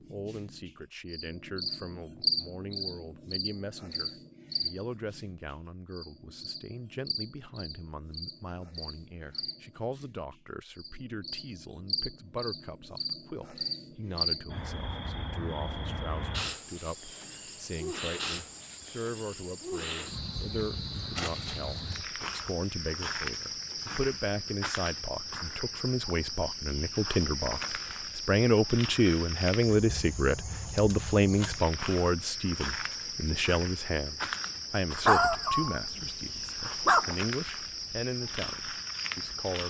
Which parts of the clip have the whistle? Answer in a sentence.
You can't hear the whistle here.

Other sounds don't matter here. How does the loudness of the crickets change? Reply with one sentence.
The loudness of the crickets stays about the same.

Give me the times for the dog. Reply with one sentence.
The dog can be heard from 35.0 to 37.1 s.